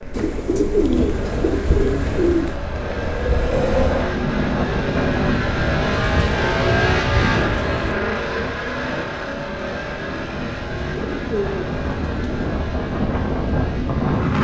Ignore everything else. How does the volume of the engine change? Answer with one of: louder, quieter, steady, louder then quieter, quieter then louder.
louder then quieter.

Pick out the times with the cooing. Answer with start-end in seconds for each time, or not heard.
0.1-2.5, 5.9-8.0, 10.9-12.5.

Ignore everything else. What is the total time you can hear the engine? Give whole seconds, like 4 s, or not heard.
14 s.